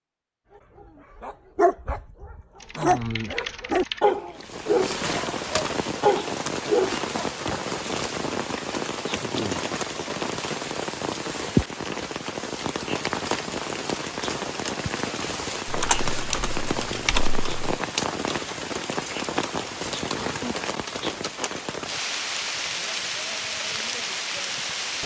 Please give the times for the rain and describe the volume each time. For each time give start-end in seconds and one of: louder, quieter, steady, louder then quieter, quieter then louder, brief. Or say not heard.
4.3-25.0 steady.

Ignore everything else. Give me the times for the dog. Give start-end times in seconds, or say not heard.
1.2-7.3.